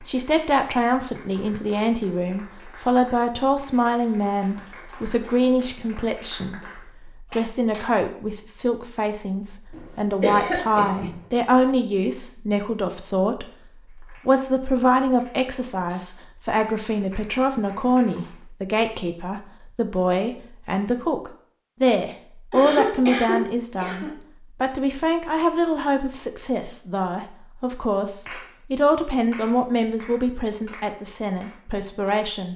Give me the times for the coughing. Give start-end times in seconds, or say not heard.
9.7-11.2, 22.5-24.1.